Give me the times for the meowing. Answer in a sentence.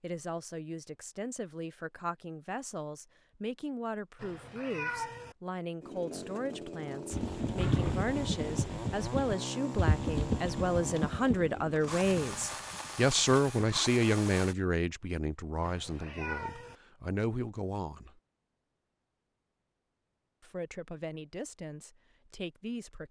You can hear the meowing from 4.2 to 5.3 s and from 15.6 to 16.8 s.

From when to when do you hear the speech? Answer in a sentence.
You can hear the speech from 0.0 to 18.1 s and from 20.4 to 23.0 s.